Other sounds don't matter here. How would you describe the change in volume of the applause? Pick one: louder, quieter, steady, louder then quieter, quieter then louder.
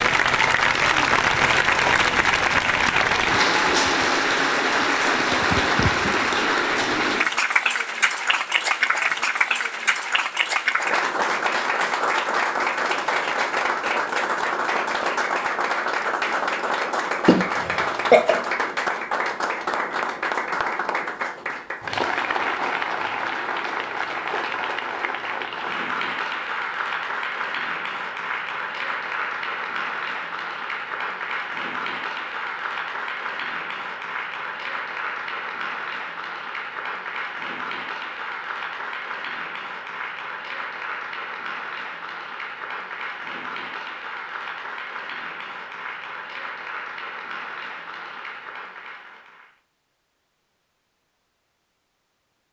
quieter.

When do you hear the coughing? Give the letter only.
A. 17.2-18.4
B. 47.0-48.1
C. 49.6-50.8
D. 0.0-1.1
A.